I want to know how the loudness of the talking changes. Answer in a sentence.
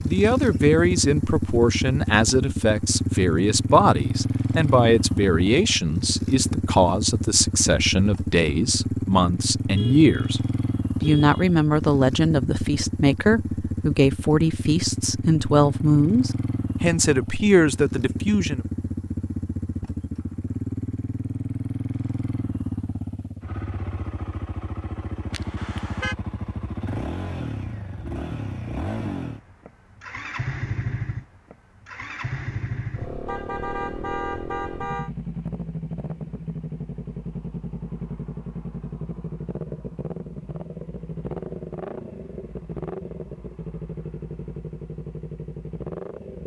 The loudness of the talking stays about the same.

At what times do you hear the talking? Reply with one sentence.
The talking can be heard from 0.0 to 10.4 s and from 11.0 to 18.6 s.